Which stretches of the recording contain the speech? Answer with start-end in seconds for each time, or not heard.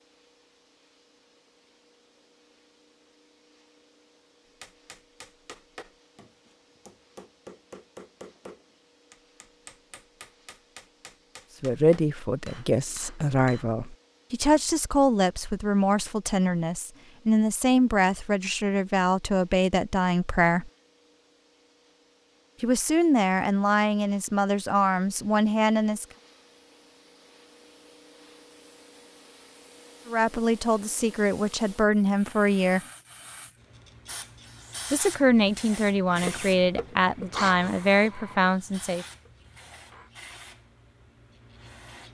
11.6-20.7, 22.6-26.1, 30.1-32.8, 34.9-39.0.